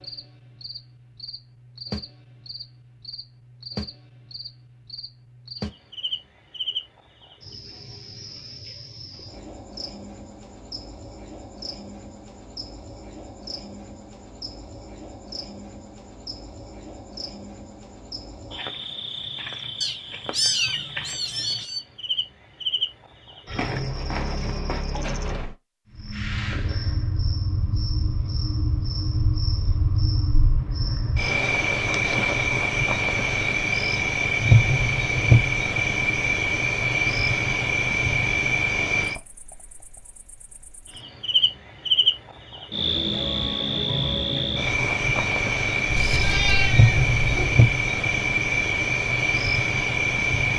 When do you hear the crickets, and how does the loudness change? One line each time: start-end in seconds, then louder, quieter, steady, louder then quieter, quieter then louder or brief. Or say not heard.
0.0-50.5 louder.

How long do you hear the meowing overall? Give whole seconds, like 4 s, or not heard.
4 s.